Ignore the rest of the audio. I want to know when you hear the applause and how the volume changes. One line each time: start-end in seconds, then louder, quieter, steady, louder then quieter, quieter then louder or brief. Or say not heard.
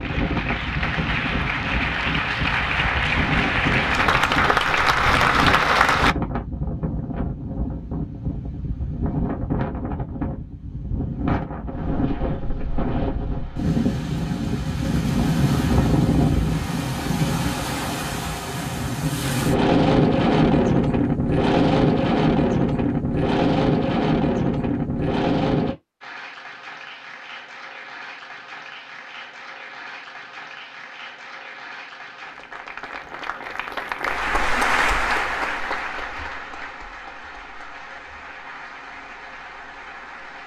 0.0-6.2 louder
26.0-40.4 louder then quieter.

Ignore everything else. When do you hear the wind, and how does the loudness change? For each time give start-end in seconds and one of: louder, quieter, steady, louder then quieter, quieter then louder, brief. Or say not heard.
0.0-25.8 louder.